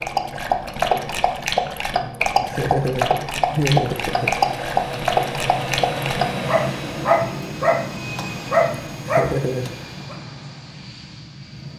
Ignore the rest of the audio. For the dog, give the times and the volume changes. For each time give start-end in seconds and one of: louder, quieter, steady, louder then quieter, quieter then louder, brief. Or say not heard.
0.0-10.2 steady.